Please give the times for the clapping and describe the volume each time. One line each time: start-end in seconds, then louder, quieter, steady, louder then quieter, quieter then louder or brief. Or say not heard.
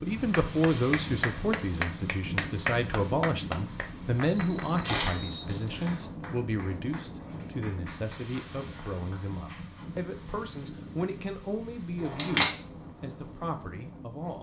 0.3-10.4 quieter.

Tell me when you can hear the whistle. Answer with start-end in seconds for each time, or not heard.
5.0-6.0.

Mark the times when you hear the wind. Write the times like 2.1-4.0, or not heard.
0.0-14.3.